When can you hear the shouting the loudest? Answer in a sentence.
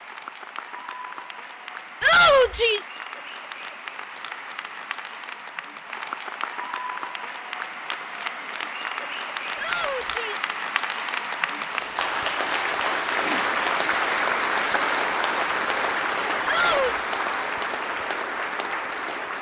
The volume of the shouting peaks at 2 seconds.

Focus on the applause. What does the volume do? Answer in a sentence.
The loudness of the applause goes up.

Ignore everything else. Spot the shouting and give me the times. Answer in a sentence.
You can hear the shouting from 2.0 to 2.9 s, from 9.6 to 10.5 s and from 16.4 to 17.1 s.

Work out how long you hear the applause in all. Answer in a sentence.
The applause can be heard for 19 seconds in total.